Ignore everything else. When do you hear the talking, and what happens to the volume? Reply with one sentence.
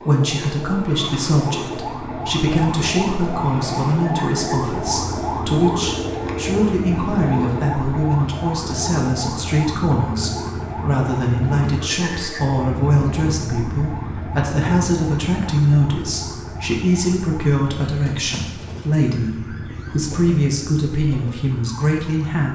You can hear the talking from 0.1 to 22.5 s, at a steady volume.